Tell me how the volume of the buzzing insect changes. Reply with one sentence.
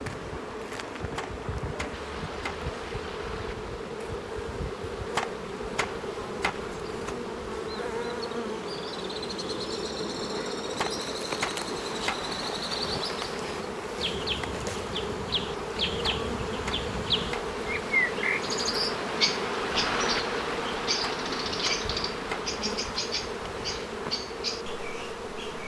The loudness of the buzzing insect stays about the same.